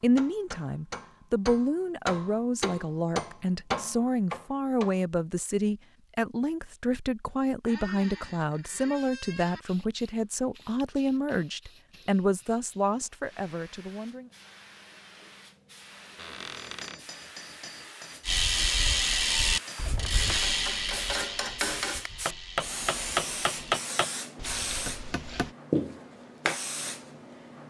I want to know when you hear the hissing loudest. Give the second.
26 s.